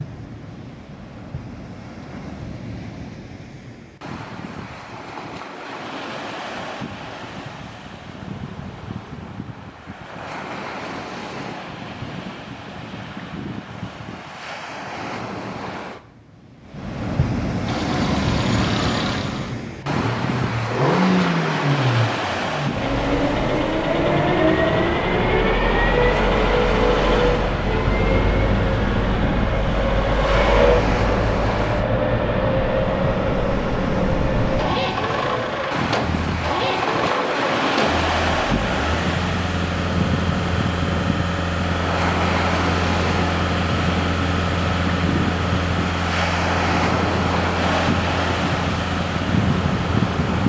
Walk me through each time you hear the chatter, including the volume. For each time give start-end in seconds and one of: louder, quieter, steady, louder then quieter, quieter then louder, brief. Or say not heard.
not heard.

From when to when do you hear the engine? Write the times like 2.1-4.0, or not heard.
17.6-50.4.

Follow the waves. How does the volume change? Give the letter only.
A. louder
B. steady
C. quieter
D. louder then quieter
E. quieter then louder
A.